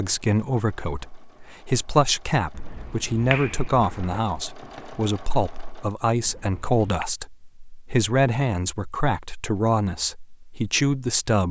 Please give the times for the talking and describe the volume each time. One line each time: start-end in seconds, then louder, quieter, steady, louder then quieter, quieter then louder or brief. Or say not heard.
0.0-11.4 steady.